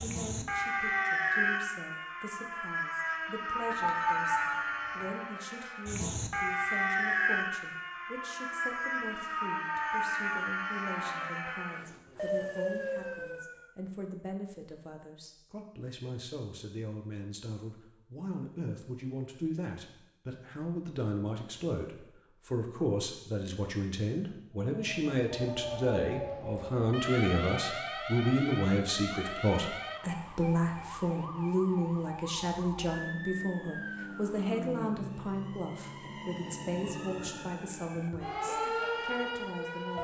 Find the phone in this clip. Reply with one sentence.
You can hear the phone from 3.7 to 5.1 s.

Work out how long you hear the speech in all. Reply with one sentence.
You can hear the speech for 40 seconds altogether.